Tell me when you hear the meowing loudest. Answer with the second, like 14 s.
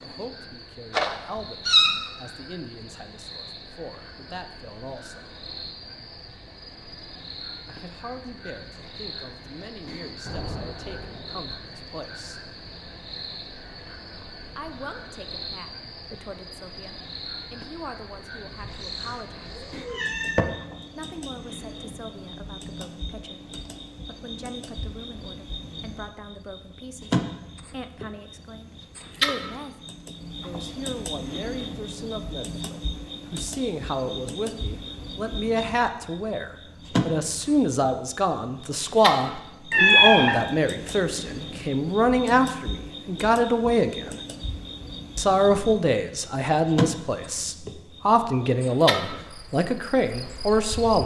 40 s.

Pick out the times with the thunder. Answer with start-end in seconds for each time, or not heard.
10.2-11.6.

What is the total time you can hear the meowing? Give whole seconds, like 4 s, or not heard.
4 s.